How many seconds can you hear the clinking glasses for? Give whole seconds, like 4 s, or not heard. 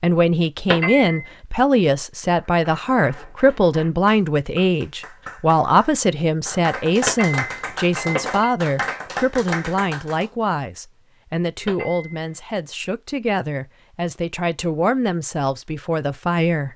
3 s.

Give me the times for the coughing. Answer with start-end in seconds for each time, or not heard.
not heard.